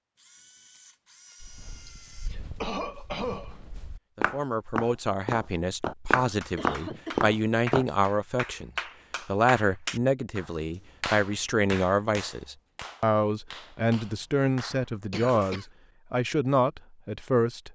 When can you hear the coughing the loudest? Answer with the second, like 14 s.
3 s.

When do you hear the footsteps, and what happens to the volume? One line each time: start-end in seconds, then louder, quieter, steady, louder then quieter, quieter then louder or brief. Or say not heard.
1.4-7.8 louder.